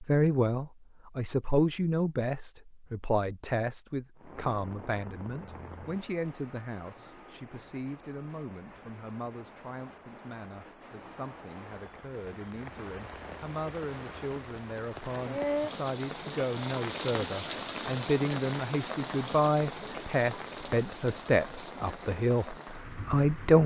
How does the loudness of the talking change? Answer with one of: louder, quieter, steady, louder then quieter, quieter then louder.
quieter then louder.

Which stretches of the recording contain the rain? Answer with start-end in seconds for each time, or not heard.
4.2-23.6.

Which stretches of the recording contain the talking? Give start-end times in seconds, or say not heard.
0.0-23.6.